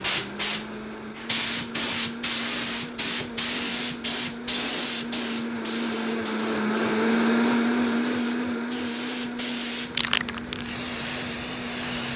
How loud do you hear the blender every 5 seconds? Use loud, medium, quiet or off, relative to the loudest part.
medium, loud, medium.